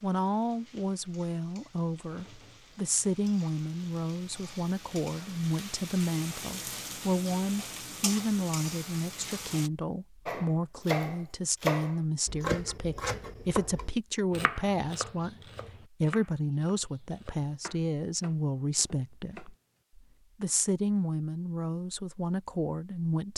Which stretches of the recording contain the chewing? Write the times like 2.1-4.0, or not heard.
not heard.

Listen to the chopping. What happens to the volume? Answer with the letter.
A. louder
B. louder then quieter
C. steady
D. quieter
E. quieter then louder
D.